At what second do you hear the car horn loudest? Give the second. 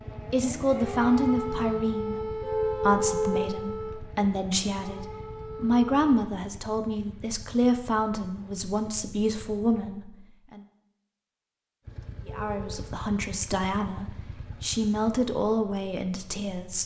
3 s.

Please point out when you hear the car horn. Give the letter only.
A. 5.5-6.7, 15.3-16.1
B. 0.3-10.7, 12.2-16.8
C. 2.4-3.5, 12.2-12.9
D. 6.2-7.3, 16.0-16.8
C.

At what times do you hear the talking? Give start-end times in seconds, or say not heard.
0.3-10.7, 12.2-16.8.